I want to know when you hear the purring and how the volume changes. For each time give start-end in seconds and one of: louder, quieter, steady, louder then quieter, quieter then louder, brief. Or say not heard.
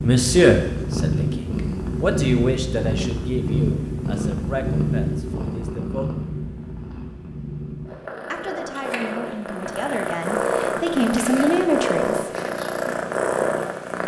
0.0-14.0 quieter then louder.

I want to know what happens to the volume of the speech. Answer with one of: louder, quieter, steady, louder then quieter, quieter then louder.
quieter then louder.